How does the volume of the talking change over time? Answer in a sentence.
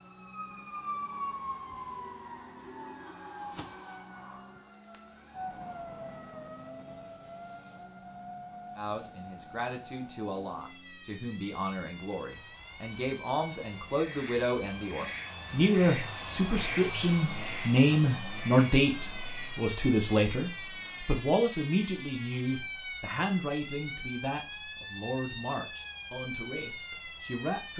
The loudness of the talking goes up, then down.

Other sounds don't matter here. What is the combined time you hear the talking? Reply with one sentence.
You can hear the talking for 19 seconds altogether.